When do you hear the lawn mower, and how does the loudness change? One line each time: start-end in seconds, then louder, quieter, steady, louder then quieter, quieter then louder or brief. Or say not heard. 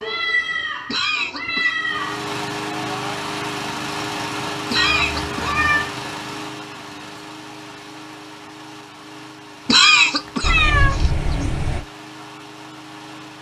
1.8-13.3 quieter.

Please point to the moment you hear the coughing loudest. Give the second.
10 s.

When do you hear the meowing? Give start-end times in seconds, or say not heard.
0.0-2.3, 4.8-5.9, 10.4-11.8.